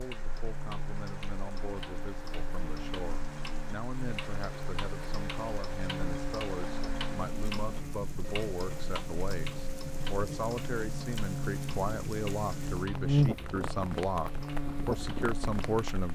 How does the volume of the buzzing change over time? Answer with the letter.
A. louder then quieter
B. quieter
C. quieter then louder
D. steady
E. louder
E.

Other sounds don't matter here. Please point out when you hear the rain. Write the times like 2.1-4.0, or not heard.
0.0-16.1.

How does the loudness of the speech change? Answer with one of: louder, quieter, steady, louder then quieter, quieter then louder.
louder.